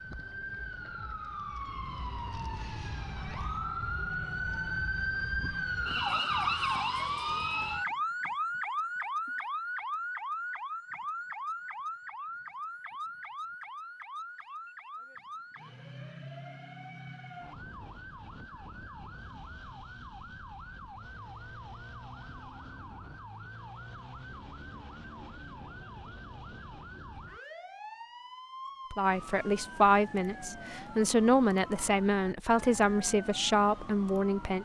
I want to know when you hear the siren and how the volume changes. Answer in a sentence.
You can hear the siren from 0.0 to 34.5 s, getting quieter.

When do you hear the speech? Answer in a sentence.
The speech can be heard from 28.9 to 34.5 s.